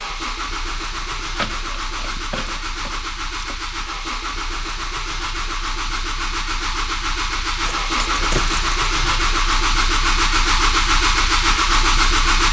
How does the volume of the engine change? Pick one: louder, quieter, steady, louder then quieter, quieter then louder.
louder.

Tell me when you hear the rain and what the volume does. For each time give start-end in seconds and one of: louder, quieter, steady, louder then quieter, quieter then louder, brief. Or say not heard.
not heard.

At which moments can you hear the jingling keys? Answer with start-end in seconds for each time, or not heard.
1.2-3.5, 7.6-9.2.